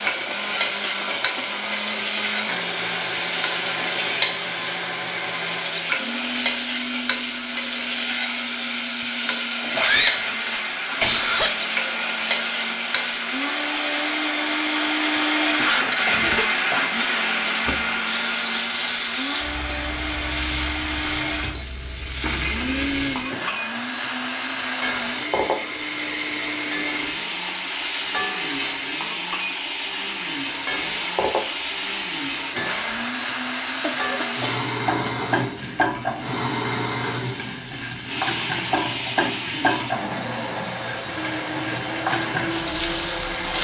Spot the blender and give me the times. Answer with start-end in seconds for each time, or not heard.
0.0-43.5.